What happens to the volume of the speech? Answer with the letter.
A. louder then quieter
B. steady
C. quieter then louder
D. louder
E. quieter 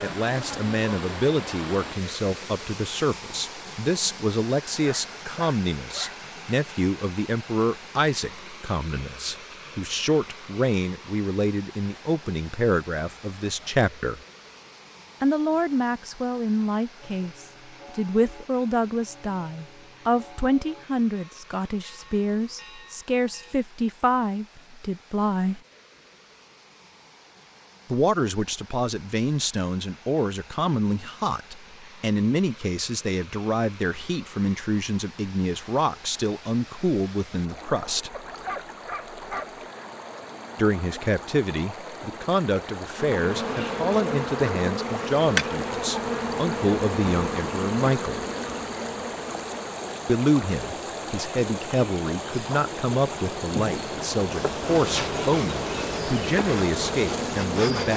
B.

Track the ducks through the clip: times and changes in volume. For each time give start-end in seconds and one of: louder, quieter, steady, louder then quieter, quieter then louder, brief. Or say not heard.
not heard.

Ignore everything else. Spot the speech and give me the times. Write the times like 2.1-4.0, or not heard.
0.0-14.2, 15.2-25.6, 27.9-38.1, 40.5-48.2, 50.0-57.9.